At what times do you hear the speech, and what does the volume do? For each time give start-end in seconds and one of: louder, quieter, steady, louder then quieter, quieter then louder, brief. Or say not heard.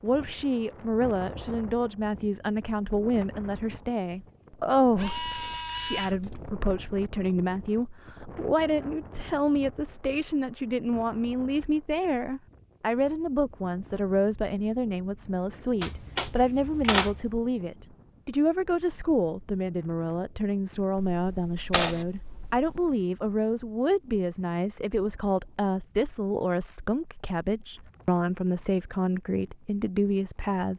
0.0-30.7 steady.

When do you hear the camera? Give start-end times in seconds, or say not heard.
5.0-6.4, 15.8-17.3, 20.9-22.9.